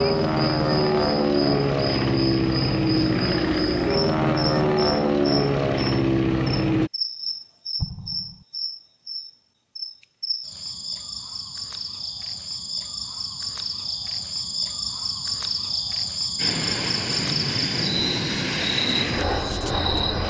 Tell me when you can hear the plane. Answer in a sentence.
The plane can be heard from 0.0 to 6.9 s and from 16.4 to 20.2 s.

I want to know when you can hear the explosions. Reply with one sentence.
The explosions can be heard from 7.8 to 8.4 s.